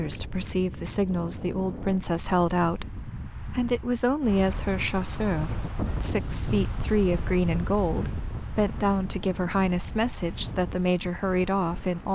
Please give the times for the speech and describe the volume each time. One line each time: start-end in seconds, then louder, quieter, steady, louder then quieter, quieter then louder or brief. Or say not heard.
0.0-12.1 steady.